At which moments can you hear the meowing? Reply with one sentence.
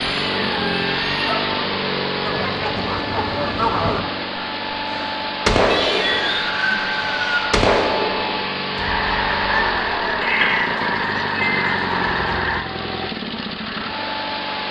You can hear the meowing from 0.0 to 1.4 s, from 5.7 to 7.5 s and from 10.2 to 11.8 s.